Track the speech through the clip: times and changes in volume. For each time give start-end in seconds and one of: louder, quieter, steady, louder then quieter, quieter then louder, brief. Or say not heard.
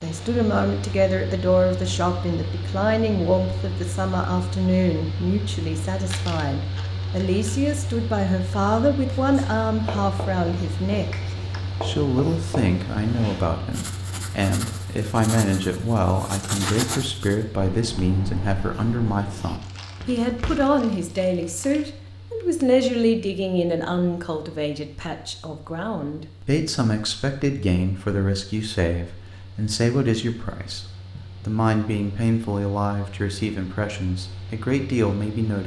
0.0-11.2 steady
11.8-35.6 steady.